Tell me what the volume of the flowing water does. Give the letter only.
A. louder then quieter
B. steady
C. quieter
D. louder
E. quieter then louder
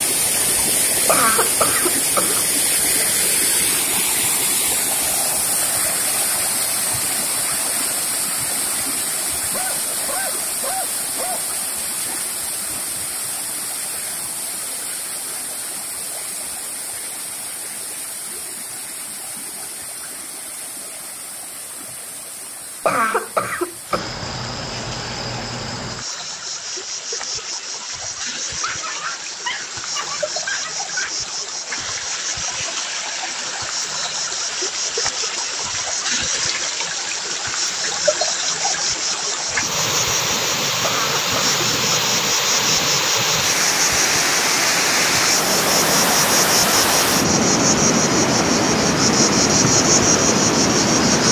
E.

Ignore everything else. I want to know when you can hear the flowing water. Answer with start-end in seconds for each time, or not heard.
0.0-51.2.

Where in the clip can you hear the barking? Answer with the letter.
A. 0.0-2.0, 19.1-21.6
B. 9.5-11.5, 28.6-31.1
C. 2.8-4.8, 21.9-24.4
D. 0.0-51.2
B.